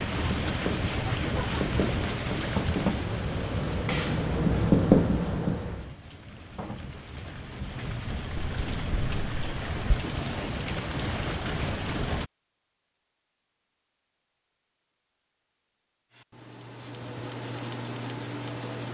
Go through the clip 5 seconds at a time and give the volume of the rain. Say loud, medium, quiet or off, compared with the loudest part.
loud, medium, loud, off.